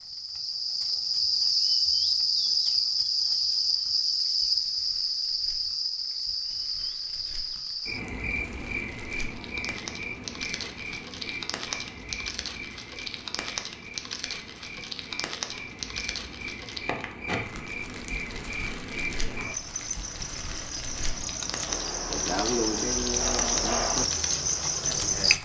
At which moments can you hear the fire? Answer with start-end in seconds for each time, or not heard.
0.0-25.4.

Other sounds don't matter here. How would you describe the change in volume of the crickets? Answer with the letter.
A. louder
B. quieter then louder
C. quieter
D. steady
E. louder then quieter
B.